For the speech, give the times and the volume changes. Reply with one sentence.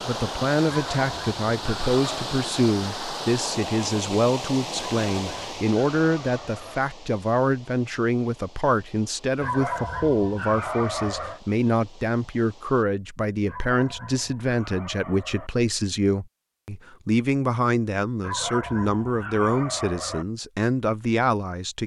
The speech can be heard from 0.1 to 21.8 s, at a steady volume.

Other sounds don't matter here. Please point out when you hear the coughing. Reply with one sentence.
You can't hear the coughing here.